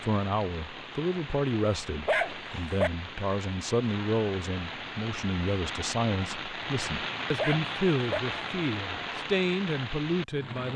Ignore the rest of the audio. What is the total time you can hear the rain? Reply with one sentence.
The rain can be heard for 11 seconds in total.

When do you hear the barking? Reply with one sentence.
You can hear the barking from 2.0 to 2.9 s and from 7.3 to 8.2 s.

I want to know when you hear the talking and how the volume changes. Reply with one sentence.
The talking can be heard from 0.0 to 10.7 s, at a steady volume.